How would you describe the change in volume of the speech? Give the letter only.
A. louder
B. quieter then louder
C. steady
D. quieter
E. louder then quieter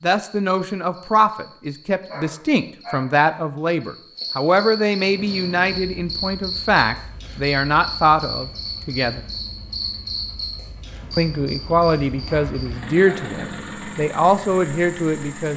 C.